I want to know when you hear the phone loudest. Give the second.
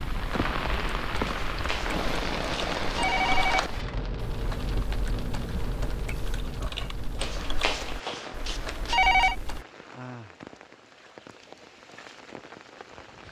9 s.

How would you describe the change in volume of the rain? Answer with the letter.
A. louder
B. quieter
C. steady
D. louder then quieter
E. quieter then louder
B.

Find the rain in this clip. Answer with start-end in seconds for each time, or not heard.
0.0-13.2.